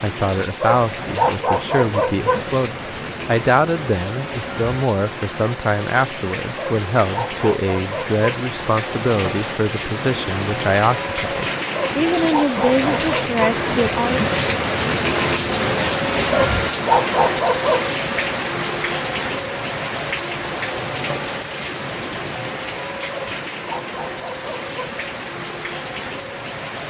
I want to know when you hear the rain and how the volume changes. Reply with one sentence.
You can hear the rain from 0.0 to 26.8 s, getting louder then quieter.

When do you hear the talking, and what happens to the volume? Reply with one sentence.
You can hear the talking from 0.0 to 14.2 s, at a steady volume.